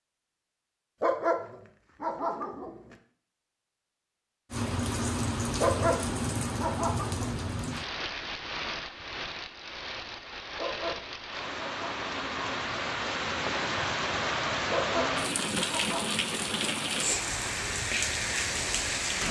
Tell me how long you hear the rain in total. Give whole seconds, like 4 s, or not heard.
15 s.